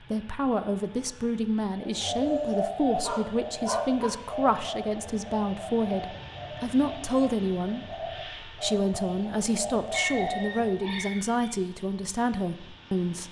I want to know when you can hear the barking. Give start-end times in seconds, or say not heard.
2.2-4.2, 9.9-11.6.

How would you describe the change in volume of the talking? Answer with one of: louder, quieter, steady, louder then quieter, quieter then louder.
steady.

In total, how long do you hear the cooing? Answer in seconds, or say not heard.
9 s.